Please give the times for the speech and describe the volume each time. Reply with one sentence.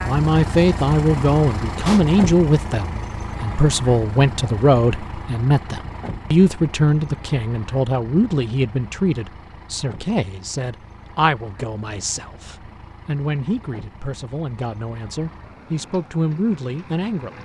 You can hear the speech from 0.0 to 17.4 s, getting quieter.